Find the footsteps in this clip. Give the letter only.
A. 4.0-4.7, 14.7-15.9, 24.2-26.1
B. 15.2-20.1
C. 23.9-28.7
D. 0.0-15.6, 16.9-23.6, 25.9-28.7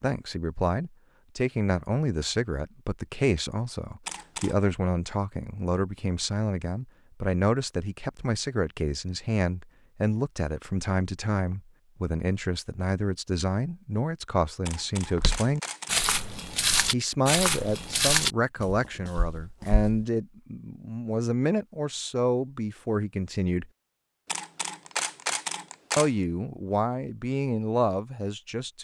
B.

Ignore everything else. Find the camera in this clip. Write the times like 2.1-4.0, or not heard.
4.0-4.7, 14.7-15.9, 24.2-26.1.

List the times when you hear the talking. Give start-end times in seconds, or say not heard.
0.0-15.6, 16.9-23.6, 25.9-28.7.